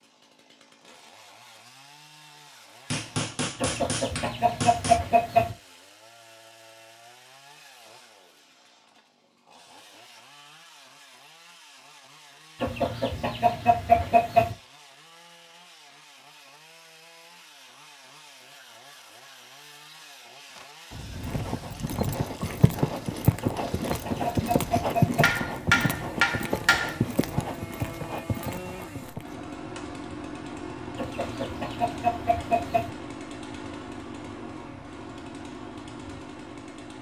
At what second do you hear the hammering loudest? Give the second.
26 s.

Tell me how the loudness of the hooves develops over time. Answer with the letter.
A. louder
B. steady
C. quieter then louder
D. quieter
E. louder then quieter
E.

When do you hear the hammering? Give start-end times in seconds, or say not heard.
2.9-5.0, 25.2-27.0.